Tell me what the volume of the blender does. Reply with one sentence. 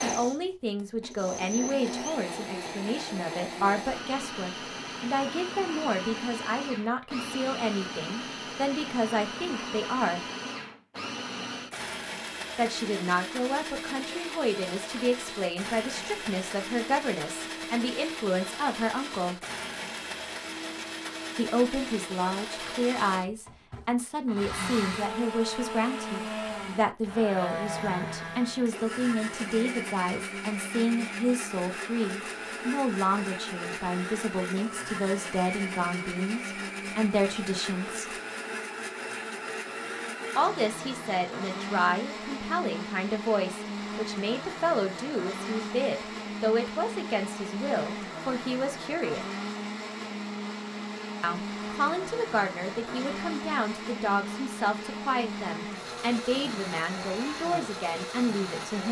The loudness of the blender stays about the same.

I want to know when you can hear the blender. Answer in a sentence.
The blender can be heard from 0.0 to 58.8 s.